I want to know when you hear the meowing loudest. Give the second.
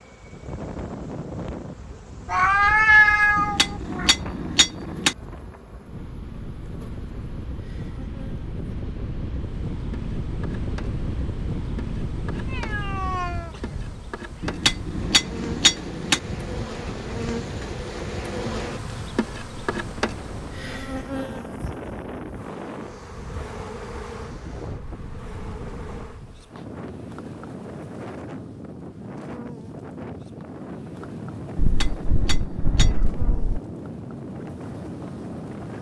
3 s.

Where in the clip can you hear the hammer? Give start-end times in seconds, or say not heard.
3.4-5.2, 14.4-16.2, 31.6-33.0.